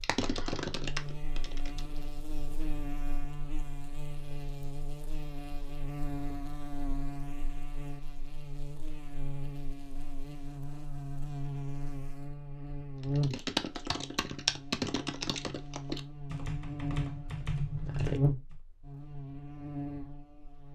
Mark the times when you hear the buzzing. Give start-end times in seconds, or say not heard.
0.0-20.6.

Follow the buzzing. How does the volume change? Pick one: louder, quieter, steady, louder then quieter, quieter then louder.
louder.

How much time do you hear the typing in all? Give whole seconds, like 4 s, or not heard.
8 s.